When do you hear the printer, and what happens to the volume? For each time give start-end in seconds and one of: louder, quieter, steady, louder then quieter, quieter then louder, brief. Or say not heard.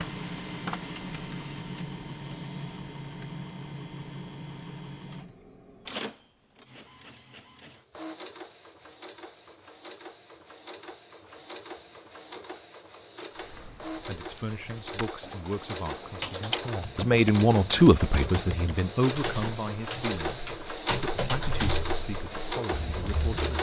0.0-23.5 quieter then louder.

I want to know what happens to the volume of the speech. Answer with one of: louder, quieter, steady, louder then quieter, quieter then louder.
louder then quieter.